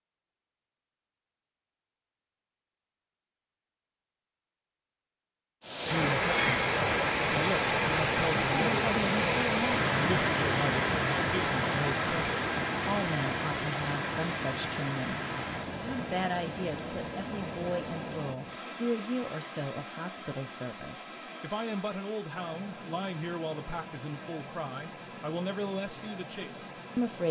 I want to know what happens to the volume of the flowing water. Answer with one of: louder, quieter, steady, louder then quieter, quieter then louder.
quieter.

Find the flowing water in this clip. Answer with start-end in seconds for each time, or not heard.
5.6-27.2.